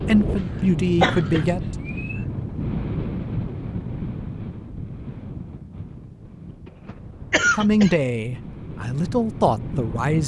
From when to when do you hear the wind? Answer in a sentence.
The wind can be heard from 0.0 to 10.2 s.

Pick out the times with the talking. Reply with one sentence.
The talking can be heard from 0.1 to 1.6 s and from 7.5 to 10.2 s.